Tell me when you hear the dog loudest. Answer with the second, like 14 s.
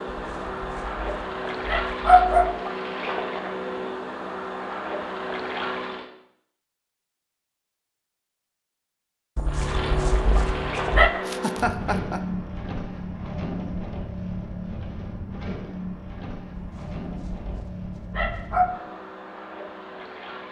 2 s.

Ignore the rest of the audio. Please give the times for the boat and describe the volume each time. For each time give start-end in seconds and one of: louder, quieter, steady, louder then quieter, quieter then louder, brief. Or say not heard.
0.0-6.1 steady
9.4-20.4 quieter.